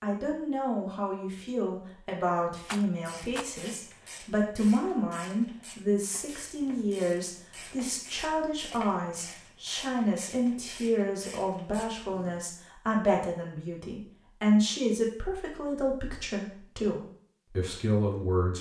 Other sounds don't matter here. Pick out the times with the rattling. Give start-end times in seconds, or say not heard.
2.6-3.5.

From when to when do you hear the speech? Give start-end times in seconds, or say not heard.
0.0-18.5.